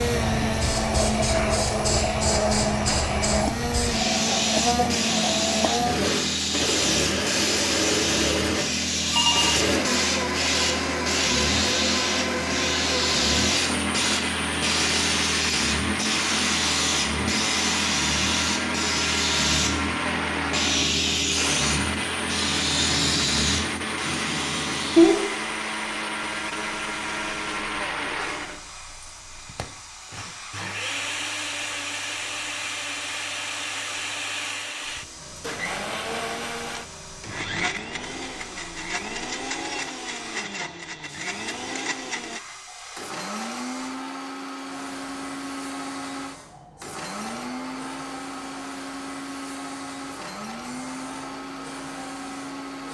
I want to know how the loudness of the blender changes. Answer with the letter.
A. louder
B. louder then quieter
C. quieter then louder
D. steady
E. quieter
E.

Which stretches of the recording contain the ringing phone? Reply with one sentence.
The ringing phone can be heard from 8.6 to 9.7 s.